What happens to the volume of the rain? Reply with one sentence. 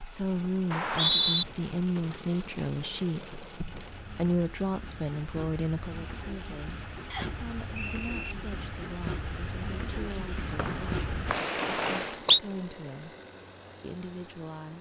The volume of the rain goes up.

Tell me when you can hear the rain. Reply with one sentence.
The rain can be heard from 0.0 to 12.2 s.